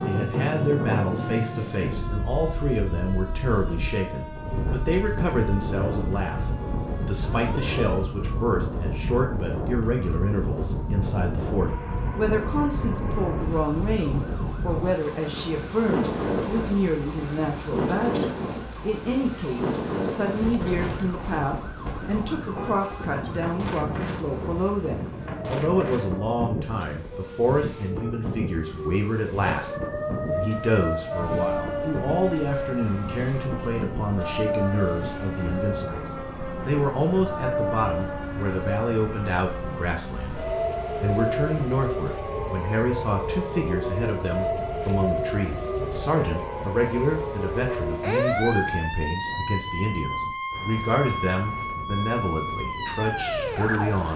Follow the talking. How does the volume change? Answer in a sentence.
The volume of the talking stays about the same.